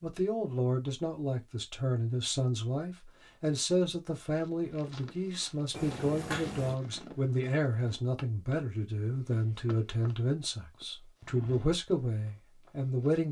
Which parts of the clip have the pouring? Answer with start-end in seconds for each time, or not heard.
5.7-6.8.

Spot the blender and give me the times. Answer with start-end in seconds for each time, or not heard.
not heard.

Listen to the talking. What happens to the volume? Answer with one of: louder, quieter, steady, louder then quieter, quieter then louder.
steady.